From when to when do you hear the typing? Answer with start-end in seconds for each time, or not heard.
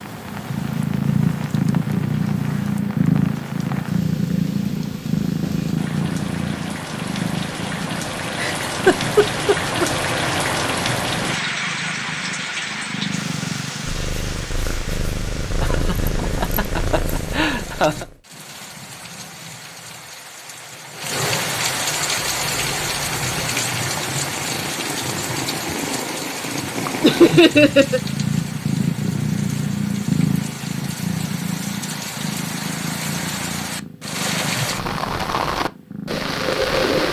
not heard.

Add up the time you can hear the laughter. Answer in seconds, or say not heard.
5 s.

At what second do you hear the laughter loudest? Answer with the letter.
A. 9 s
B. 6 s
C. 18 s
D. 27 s
D.